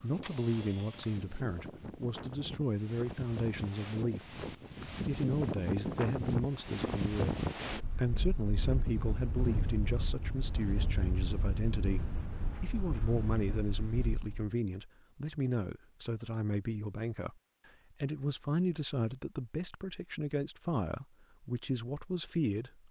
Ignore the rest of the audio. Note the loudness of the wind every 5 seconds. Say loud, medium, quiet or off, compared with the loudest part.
medium, loud, medium, off, off.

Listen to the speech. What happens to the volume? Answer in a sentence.
The loudness of the speech stays about the same.